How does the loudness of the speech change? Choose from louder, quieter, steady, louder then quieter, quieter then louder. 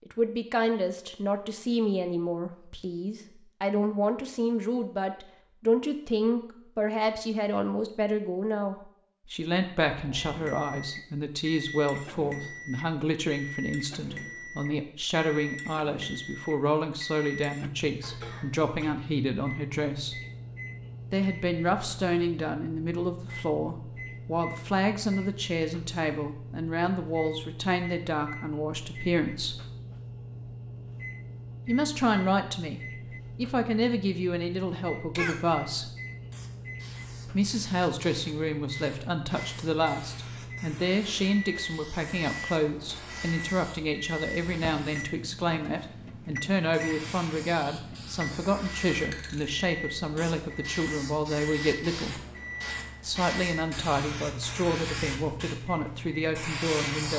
steady.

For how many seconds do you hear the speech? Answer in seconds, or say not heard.
52 s.